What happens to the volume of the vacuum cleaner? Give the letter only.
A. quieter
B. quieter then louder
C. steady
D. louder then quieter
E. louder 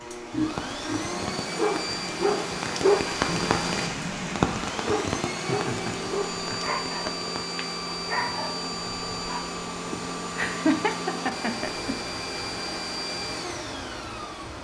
C.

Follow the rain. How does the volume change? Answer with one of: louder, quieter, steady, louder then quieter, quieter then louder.
louder then quieter.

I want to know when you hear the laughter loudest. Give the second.
11 s.